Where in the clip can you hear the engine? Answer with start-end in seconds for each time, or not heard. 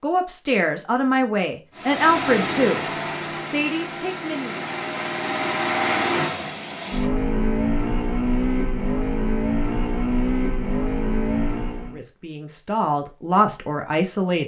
1.8-12.0.